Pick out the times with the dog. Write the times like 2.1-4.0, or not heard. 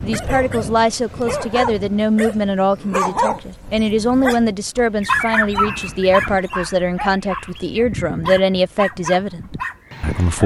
0.0-10.4.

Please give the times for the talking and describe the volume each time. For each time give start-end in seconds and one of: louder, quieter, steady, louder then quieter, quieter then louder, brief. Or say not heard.
0.0-10.4 steady.